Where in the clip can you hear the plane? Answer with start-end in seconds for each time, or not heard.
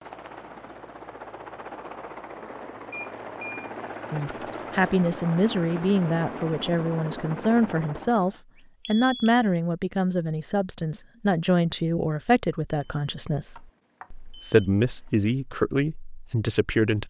0.0-8.4.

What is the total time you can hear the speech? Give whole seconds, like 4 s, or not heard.
13 s.